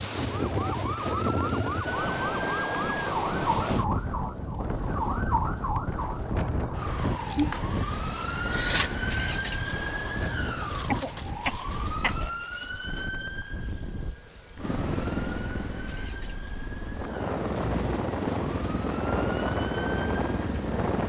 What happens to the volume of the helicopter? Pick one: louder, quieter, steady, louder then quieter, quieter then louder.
quieter then louder.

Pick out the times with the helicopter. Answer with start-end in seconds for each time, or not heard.
14.6-21.0.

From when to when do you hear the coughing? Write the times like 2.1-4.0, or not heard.
7.3-8.9, 10.6-12.3.